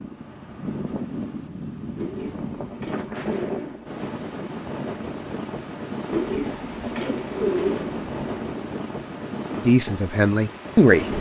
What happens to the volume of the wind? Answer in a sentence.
The volume of the wind stays about the same.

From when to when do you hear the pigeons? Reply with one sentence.
You can hear the pigeons from 1.9 to 4.0 s and from 6.1 to 8.7 s.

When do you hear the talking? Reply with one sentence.
You can hear the talking from 9.6 to 11.1 s.